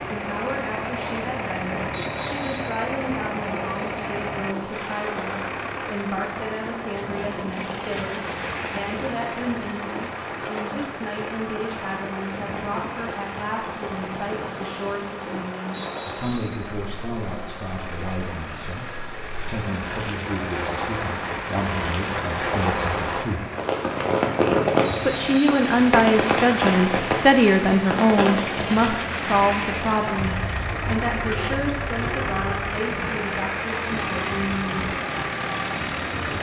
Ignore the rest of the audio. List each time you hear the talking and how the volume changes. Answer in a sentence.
The talking can be heard from 0.1 to 23.4 s, at a steady volume; and from 25.1 to 35.0 s, getting quieter.